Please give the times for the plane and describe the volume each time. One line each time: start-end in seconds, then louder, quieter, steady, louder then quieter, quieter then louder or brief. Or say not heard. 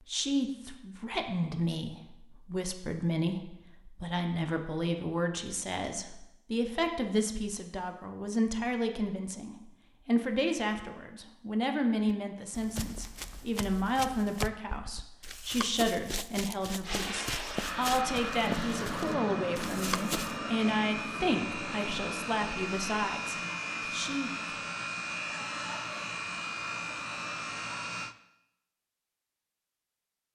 16.8-28.1 steady.